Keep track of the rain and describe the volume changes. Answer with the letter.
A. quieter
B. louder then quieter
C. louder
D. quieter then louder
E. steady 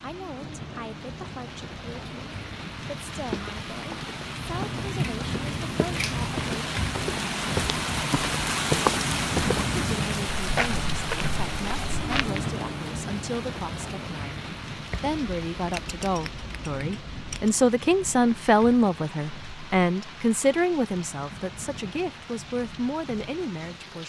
B.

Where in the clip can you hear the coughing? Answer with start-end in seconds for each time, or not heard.
not heard.